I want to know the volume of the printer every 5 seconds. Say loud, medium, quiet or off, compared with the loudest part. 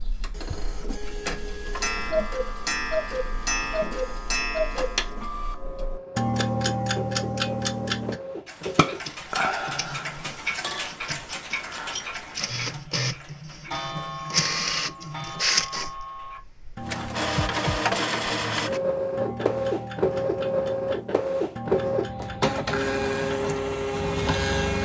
quiet, medium, medium, loud, loud.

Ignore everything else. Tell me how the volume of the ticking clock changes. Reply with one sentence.
The volume of the ticking clock goes down.